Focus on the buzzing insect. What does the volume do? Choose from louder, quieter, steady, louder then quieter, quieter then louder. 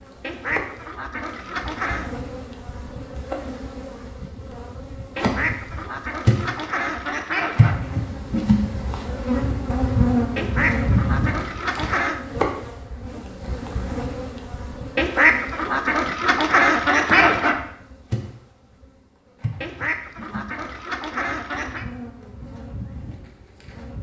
louder then quieter.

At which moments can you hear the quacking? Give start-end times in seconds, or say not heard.
0.2-2.2, 5.2-7.8, 10.3-12.2, 14.9-17.6, 19.6-21.9.